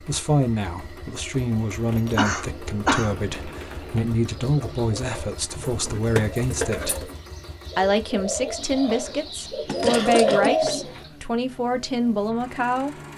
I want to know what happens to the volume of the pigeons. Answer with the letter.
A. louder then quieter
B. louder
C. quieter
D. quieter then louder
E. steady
B.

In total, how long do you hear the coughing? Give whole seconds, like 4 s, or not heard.
2 s.